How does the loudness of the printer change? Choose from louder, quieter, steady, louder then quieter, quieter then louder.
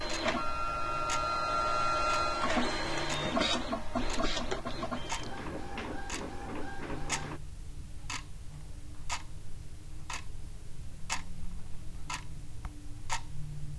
quieter.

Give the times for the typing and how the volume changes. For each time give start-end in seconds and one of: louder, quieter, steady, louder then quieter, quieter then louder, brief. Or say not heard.
not heard.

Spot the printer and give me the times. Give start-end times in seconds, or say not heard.
0.0-7.4.